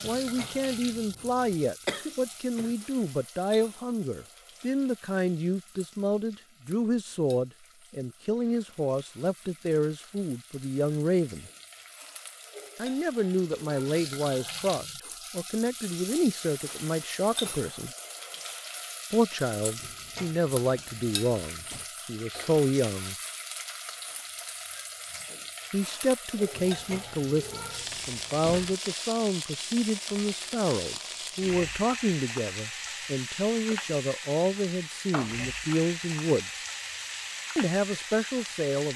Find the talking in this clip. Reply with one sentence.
The talking can be heard from 0.0 to 11.5 s, from 12.8 to 17.9 s, from 19.1 to 23.1 s, from 25.7 to 36.6 s and from 37.5 to 38.9 s.